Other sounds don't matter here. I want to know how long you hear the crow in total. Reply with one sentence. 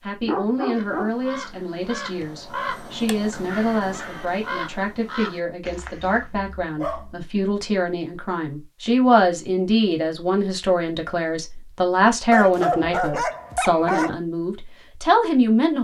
You can hear the crow for 6 seconds altogether.